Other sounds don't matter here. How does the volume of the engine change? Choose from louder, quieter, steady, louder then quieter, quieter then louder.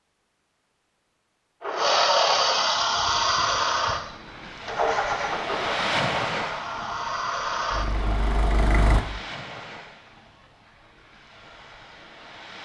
quieter.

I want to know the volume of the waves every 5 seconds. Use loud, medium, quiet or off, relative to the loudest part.
medium, loud, quiet.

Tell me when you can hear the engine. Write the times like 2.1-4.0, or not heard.
1.6-9.0.